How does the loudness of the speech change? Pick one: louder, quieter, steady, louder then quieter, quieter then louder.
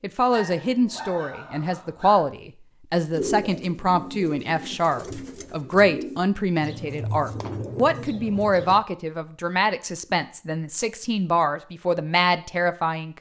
steady.